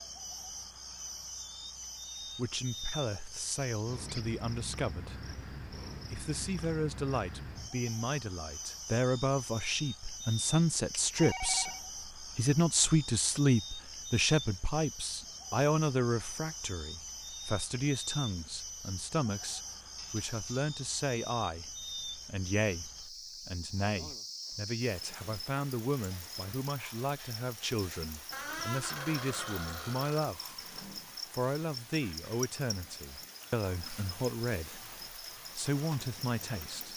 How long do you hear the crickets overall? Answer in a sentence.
You can hear the crickets for 37 seconds altogether.